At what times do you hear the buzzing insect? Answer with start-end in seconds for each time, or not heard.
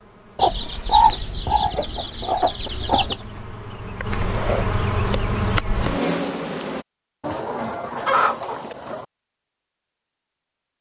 0.0-6.8.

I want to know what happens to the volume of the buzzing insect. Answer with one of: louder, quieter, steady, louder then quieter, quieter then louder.
louder.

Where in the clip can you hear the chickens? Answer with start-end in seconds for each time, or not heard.
0.3-3.2, 7.2-9.1.